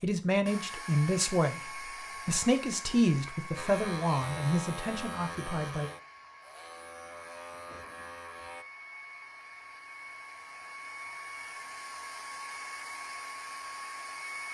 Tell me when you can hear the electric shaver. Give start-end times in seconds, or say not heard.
3.5-8.7.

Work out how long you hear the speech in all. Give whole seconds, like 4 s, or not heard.
6 s.